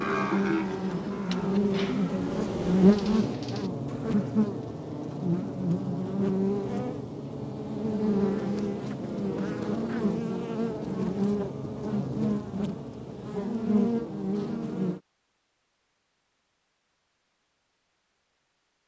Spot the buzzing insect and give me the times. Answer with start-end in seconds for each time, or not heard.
0.0-15.0.